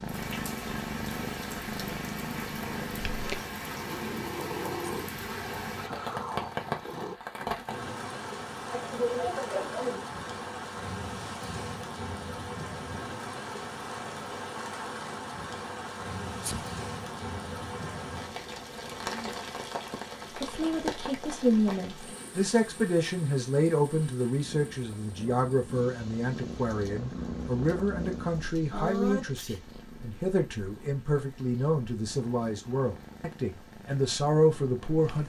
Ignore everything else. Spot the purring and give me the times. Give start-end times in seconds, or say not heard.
0.0-7.2, 24.4-35.2.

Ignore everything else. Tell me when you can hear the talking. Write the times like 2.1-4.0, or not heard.
20.4-35.2.